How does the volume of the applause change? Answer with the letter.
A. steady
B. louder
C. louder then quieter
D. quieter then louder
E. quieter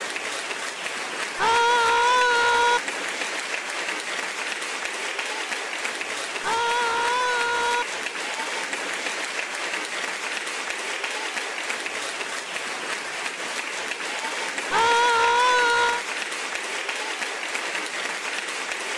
A.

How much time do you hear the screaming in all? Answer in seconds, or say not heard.
4 s.